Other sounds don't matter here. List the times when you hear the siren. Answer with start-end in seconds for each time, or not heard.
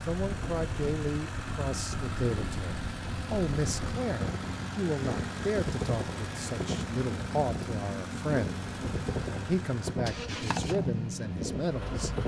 not heard.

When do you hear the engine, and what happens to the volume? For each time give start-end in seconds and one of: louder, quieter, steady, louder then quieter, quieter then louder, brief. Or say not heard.
0.0-12.2 steady.